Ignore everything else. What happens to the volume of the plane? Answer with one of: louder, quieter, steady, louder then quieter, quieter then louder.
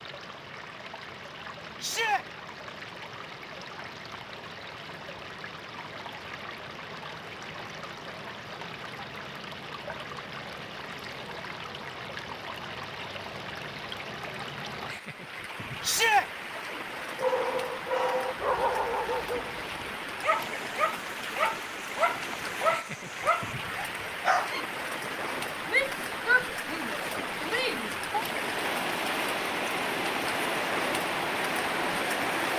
steady.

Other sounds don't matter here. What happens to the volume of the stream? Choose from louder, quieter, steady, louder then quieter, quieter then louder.
louder.